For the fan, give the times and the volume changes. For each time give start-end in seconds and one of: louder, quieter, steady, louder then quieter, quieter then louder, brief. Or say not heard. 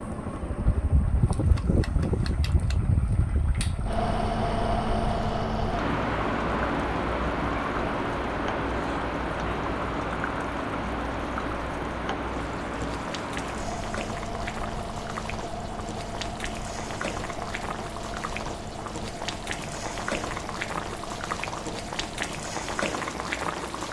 0.0-23.8 quieter.